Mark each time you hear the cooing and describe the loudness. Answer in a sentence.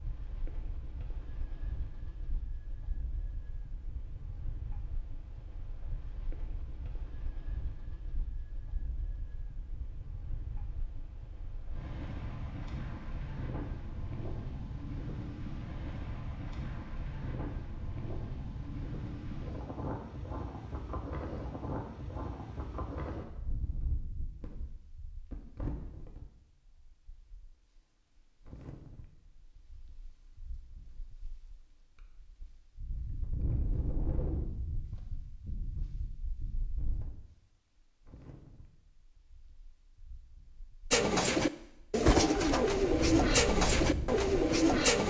The cooing can be heard from 40.9 to 45.0 s, at a steady volume.